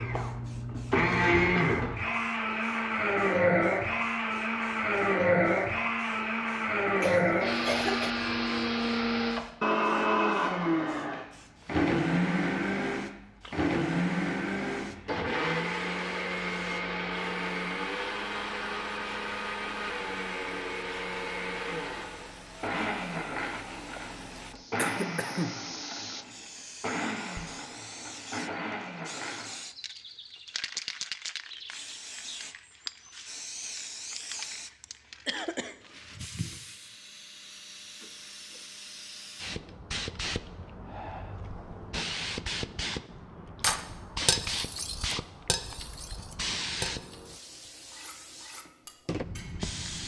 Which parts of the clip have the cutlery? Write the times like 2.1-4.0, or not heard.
43.6-49.6.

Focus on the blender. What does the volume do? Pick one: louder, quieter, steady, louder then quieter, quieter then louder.
quieter.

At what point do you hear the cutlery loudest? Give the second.
44 s.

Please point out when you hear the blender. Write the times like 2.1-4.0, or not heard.
0.0-29.6.